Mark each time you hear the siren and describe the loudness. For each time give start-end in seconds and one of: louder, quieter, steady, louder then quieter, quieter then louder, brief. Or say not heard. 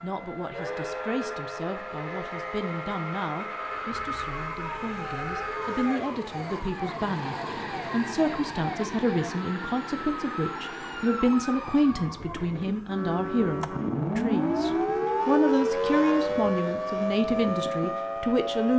0.0-18.7 louder.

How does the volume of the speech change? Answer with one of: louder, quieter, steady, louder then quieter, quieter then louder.
louder.